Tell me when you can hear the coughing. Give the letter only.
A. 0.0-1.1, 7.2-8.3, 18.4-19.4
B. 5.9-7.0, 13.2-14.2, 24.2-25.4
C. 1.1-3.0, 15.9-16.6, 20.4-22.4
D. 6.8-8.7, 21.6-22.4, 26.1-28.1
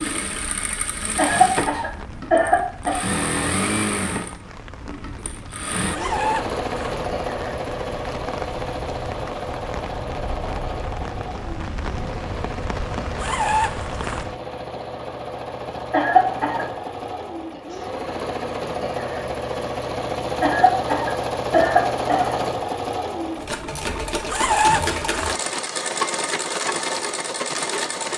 C.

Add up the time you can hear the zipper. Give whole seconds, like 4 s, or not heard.
3 s.